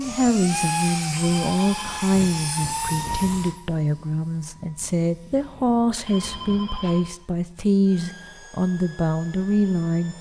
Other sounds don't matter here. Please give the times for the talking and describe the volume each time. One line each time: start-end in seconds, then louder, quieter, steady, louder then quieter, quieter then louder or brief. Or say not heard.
0.0-10.1 steady.